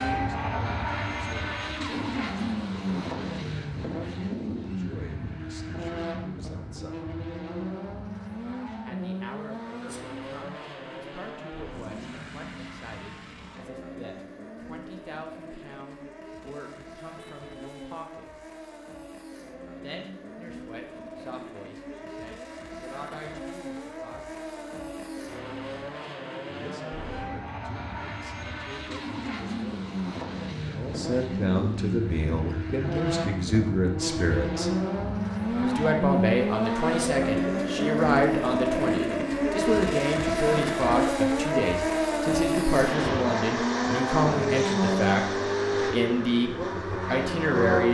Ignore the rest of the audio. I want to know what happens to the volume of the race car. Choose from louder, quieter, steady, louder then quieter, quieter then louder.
quieter then louder.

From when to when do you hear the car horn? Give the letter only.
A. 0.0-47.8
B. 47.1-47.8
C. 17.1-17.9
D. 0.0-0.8
C.